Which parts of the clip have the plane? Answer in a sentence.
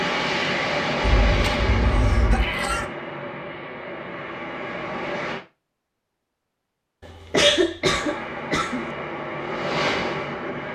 The plane can be heard from 0.0 to 5.5 s and from 7.8 to 10.7 s.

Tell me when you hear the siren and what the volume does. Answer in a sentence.
You can't hear the siren here.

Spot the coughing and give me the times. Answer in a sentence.
You can hear the coughing from 1.0 to 2.9 s and from 7.0 to 8.8 s.